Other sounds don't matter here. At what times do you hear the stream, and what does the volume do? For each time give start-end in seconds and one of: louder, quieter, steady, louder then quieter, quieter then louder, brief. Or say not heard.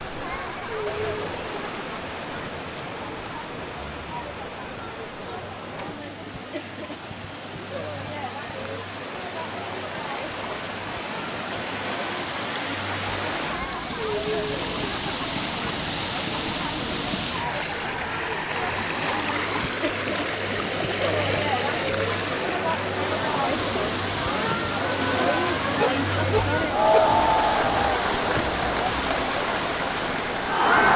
0.0-30.9 louder.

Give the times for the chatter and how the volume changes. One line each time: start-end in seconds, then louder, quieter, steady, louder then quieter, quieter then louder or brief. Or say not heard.
0.0-30.9 louder.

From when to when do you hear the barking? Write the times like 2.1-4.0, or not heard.
25.7-27.0.